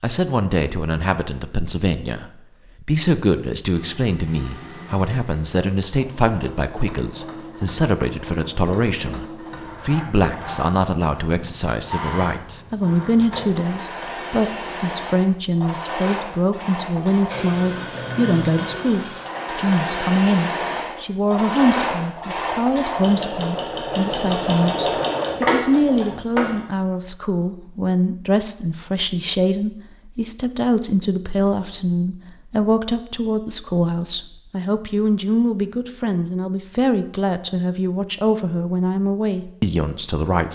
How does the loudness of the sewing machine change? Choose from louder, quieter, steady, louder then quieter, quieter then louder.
louder.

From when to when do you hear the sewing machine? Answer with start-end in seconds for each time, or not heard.
3.7-26.6.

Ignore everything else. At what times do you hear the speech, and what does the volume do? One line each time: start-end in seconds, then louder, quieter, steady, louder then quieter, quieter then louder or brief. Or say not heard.
0.0-40.5 steady.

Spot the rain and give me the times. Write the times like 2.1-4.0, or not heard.
not heard.